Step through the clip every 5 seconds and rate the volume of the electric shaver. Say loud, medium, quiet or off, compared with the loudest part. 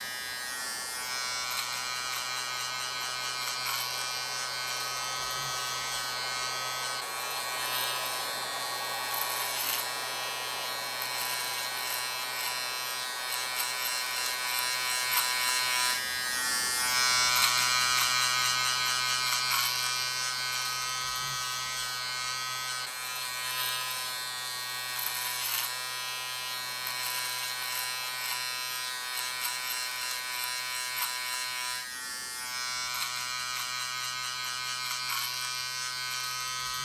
medium, medium, medium, loud, medium, medium, medium, medium.